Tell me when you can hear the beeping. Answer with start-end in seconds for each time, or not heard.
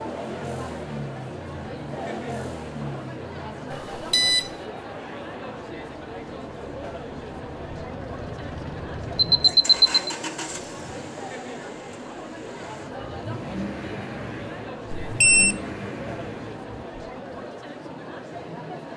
3.7-4.5, 9.2-10.0, 15.0-15.6.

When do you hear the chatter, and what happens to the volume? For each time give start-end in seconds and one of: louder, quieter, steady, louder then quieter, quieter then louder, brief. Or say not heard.
0.0-18.9 steady.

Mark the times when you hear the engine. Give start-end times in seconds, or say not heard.
0.0-16.9.